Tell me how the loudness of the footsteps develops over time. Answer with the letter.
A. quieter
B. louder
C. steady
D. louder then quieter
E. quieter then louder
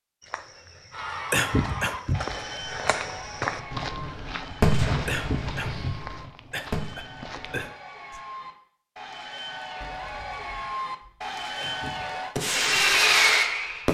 D.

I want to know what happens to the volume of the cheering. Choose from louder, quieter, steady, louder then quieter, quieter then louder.
quieter then louder.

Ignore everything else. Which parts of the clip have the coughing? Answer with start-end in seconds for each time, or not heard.
1.3-2.4, 5.0-7.7, 11.6-12.2.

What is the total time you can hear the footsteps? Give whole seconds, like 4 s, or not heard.
8 s.